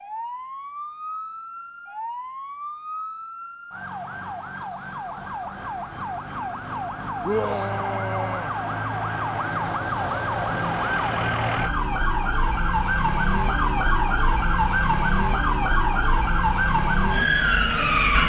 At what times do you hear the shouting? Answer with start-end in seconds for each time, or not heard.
7.2-8.5.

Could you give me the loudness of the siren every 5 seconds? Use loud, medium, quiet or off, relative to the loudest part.
quiet, medium, loud, loud.